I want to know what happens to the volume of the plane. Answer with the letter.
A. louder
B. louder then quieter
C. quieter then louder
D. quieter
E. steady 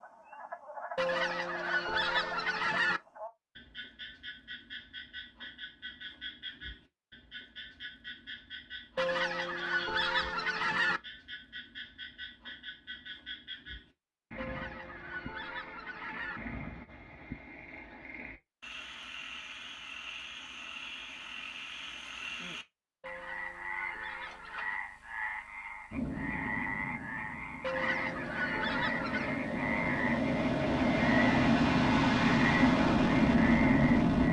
A.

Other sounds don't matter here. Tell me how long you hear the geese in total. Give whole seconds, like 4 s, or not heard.
10 s.